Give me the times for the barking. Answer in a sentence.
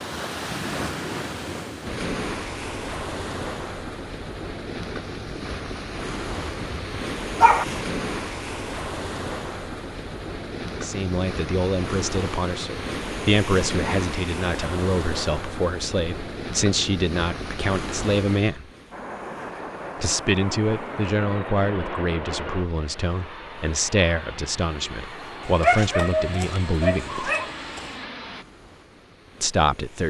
You can hear the barking from 6.7 to 7.7 s and from 25.4 to 28.1 s.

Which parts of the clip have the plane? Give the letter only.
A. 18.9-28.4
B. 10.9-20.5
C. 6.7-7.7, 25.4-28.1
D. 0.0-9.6
A.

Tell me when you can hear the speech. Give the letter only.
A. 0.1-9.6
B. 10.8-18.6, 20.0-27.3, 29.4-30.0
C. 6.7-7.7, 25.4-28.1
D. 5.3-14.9
B.